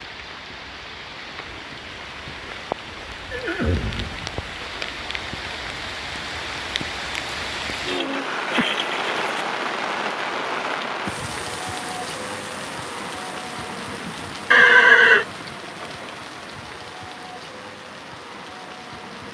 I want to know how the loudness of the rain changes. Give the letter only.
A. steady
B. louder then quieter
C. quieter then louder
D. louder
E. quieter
B.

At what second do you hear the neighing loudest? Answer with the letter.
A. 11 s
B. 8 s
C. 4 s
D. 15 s
D.